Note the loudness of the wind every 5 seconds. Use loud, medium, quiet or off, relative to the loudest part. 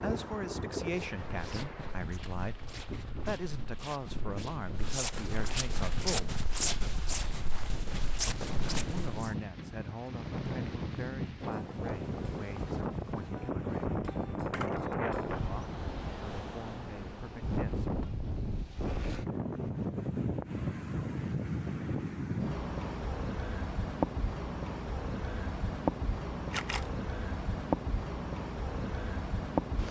medium, medium, loud, loud, loud, loud.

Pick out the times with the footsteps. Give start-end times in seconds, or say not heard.
0.9-9.3.